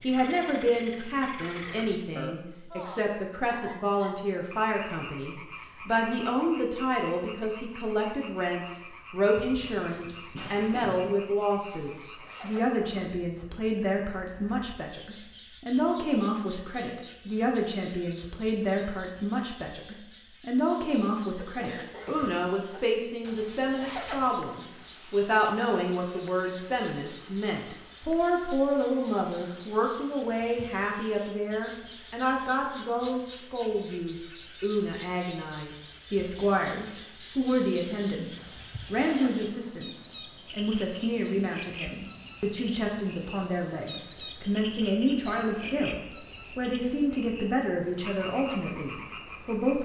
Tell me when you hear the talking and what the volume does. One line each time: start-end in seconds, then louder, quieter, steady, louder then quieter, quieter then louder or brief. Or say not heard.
0.0-49.7 steady.